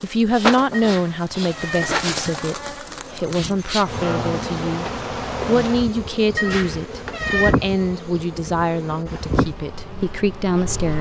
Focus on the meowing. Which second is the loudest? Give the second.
7 s.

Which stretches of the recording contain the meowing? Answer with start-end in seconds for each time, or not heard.
0.7-1.9, 6.3-7.5.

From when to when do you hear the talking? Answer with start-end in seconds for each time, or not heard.
0.0-10.9.